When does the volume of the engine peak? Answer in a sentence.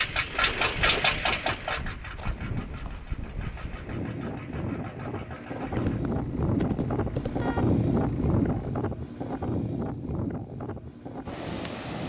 The loudest moment of the engine is at 1 second.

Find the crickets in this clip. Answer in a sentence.
You can't hear the crickets here.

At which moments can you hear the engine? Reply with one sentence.
You can hear the engine from 0.0 to 8.8 s.